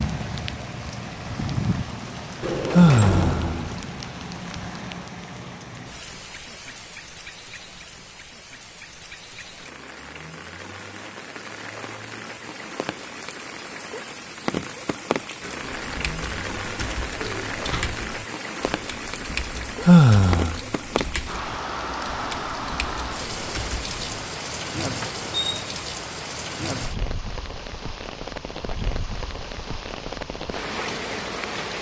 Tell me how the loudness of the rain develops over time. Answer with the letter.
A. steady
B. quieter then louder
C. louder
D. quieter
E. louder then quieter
B.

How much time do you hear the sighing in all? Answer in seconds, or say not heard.
2 s.